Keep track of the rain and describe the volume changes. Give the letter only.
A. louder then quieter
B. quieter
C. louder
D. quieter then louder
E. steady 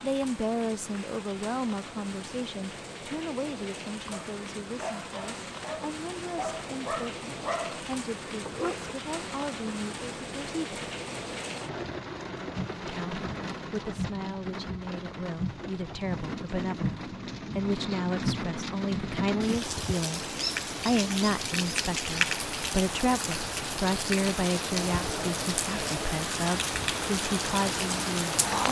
C.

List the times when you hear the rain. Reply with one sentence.
You can hear the rain from 0.0 to 28.6 s.